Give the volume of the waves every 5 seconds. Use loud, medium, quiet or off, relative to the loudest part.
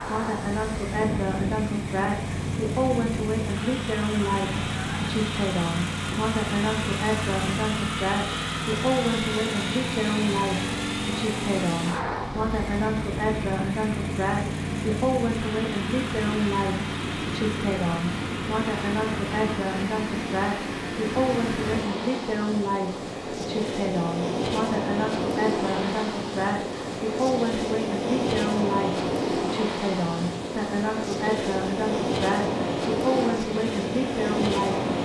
medium, medium, medium, medium, loud, loud, loud.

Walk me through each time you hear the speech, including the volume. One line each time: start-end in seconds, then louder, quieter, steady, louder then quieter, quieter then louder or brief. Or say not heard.
0.0-34.9 steady.